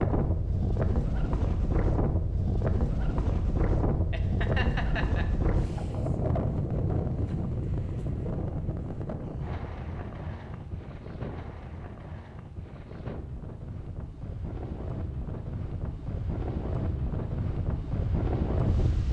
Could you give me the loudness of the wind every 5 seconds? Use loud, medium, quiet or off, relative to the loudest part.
loud, loud, medium, loud.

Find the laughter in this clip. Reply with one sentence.
You can hear the laughter from 4.1 to 5.3 s.